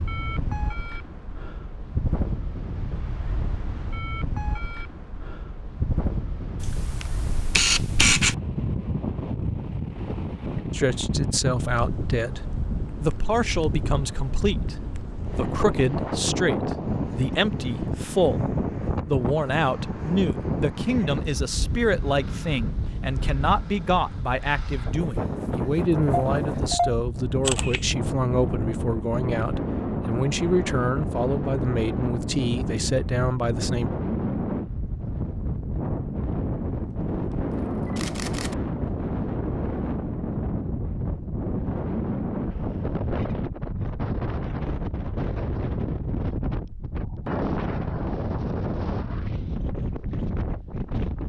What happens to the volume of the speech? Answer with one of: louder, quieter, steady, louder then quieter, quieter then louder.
steady.